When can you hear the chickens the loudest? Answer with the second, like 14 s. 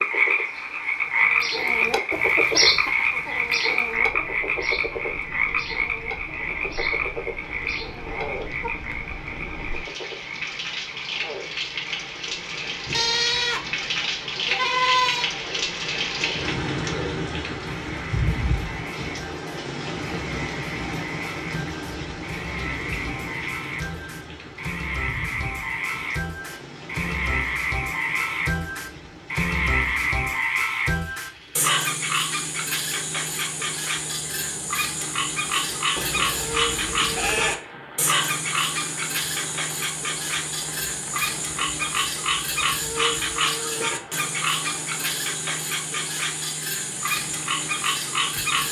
3 s.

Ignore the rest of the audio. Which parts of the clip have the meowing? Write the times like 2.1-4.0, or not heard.
not heard.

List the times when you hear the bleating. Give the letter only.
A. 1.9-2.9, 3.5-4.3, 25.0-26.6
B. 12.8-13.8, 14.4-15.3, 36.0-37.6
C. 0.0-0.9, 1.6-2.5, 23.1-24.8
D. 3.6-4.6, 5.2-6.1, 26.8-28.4
B.